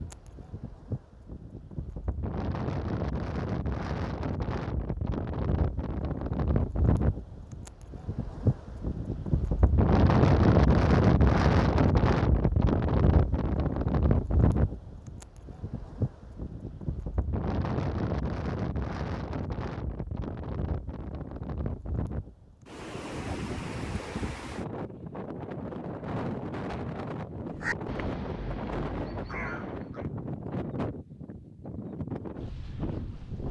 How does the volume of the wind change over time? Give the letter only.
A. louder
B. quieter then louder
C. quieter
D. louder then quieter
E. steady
D.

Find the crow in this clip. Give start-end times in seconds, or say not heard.
27.6-30.1.